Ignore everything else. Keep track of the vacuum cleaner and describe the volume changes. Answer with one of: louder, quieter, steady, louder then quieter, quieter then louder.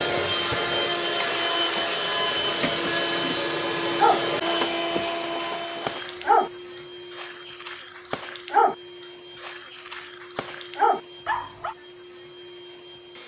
quieter.